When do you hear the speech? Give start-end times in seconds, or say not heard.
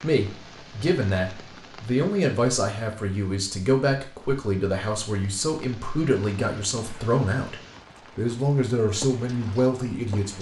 0.0-7.5, 8.2-10.3.